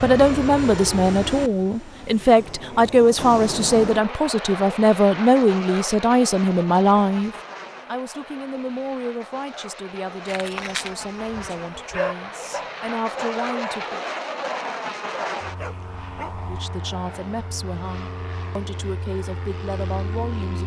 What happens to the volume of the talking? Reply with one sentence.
The volume of the talking goes down.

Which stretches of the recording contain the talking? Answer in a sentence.
The talking can be heard from 0.0 to 14.0 s and from 16.4 to 20.6 s.